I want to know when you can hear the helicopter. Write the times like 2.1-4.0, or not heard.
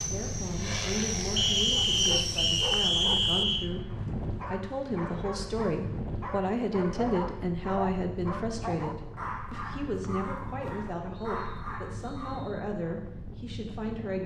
0.0-2.9.